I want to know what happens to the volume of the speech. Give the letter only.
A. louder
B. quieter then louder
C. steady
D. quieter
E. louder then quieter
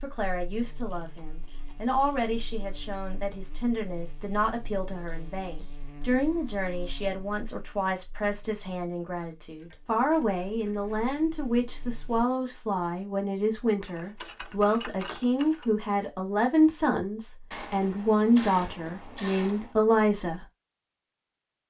A.